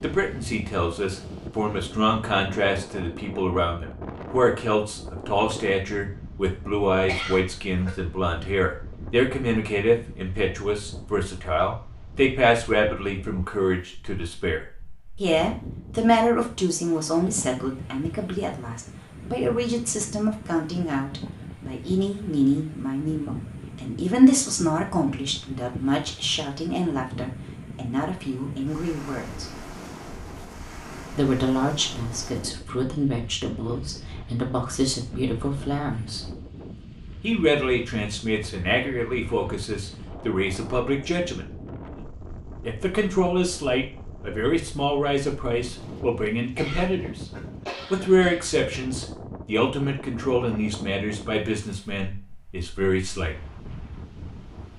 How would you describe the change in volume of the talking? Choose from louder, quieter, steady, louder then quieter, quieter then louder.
steady.